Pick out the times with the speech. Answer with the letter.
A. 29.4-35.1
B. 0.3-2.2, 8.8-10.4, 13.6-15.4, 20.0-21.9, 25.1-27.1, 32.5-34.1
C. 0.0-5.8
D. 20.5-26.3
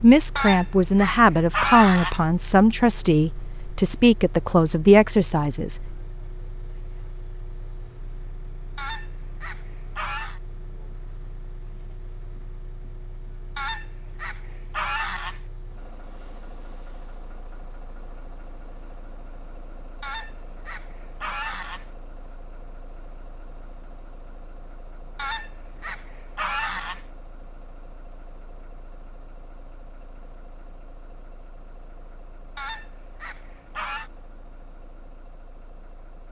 C.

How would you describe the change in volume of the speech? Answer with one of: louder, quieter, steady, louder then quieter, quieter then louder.
steady.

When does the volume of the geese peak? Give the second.
2 s.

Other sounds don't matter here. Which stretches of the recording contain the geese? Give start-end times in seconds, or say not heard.
0.3-2.2, 8.8-10.4, 13.6-15.4, 20.0-21.9, 25.1-27.1, 32.5-34.1.